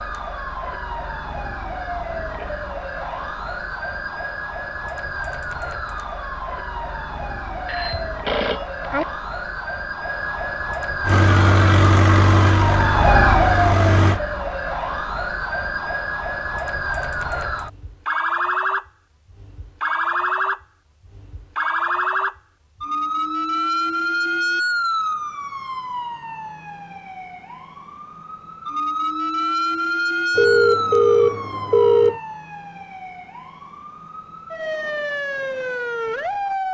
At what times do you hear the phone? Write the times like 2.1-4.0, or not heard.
7.7-9.1, 30.4-32.2.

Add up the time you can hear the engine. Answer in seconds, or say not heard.
3 s.